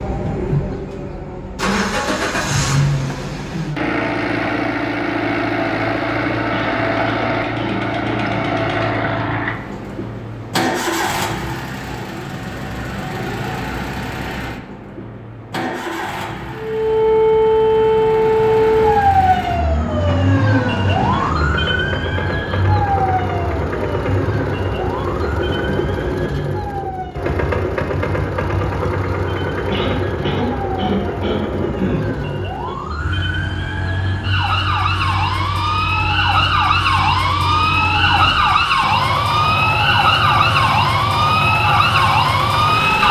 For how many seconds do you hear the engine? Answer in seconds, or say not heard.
43 s.